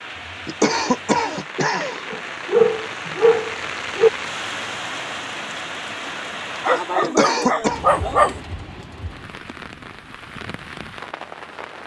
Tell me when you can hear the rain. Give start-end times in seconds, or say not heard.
0.0-11.8.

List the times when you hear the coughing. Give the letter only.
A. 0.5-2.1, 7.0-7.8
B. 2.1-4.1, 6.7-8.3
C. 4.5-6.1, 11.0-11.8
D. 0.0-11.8
A.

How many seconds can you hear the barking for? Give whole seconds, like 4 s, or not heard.
4 s.